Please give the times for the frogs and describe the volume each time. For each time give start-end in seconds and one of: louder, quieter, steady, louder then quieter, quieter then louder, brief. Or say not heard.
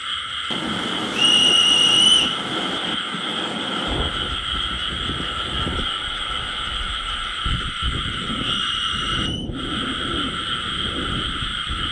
0.0-11.8 steady.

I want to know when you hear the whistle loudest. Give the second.
2 s.